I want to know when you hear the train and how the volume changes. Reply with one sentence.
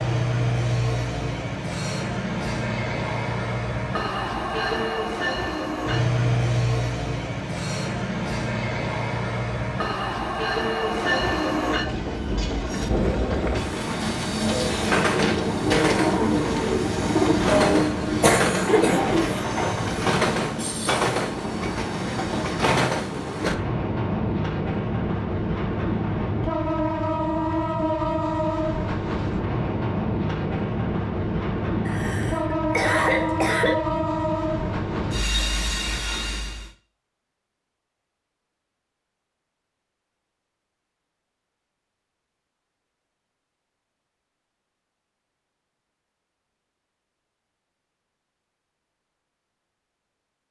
You can hear the train from 0.0 to 36.7 s, at a steady volume.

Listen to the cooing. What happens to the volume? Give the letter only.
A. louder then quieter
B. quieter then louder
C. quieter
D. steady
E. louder
E.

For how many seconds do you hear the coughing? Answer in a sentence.
You can hear the coughing for 4 seconds altogether.